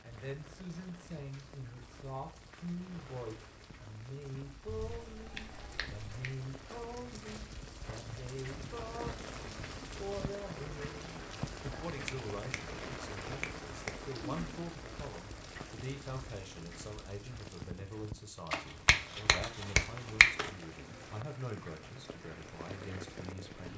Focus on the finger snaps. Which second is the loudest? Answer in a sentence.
The loudest moment of the finger snaps is at 20 seconds.